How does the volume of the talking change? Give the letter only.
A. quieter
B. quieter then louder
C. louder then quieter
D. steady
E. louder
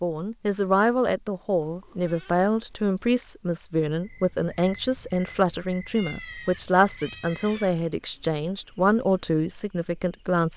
D.